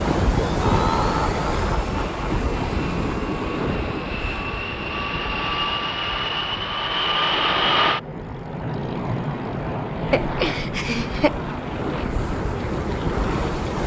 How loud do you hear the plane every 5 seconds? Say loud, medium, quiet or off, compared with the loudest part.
medium, loud, medium.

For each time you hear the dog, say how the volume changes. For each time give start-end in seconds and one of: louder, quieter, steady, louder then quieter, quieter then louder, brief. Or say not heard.
not heard.